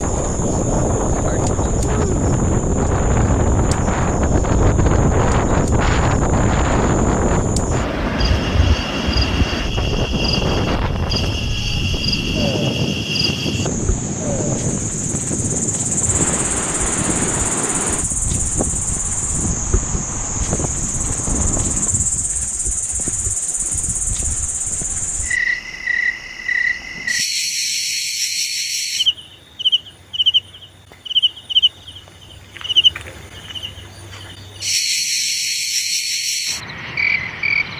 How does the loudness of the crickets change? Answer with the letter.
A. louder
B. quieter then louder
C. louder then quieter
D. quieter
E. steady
A.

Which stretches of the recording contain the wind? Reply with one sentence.
The wind can be heard from 0.0 to 22.3 s.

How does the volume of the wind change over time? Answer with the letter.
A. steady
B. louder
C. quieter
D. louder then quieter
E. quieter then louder
C.